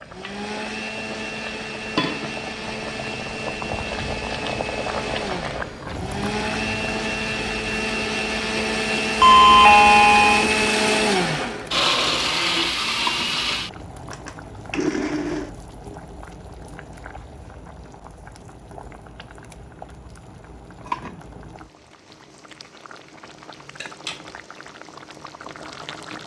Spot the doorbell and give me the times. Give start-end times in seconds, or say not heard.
9.2-10.6.